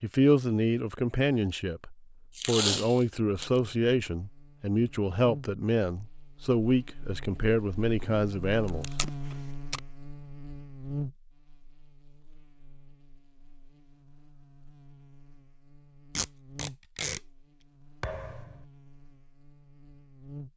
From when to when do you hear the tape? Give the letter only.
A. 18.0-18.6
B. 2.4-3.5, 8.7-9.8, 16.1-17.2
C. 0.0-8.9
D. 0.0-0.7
B.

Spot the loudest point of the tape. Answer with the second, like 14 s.
3 s.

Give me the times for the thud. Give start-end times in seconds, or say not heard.
18.0-18.6.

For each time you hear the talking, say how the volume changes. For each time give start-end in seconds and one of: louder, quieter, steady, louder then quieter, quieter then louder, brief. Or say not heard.
0.0-8.9 steady.